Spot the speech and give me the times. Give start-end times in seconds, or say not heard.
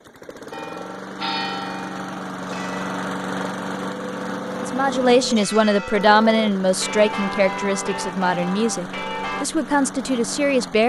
4.6-10.8.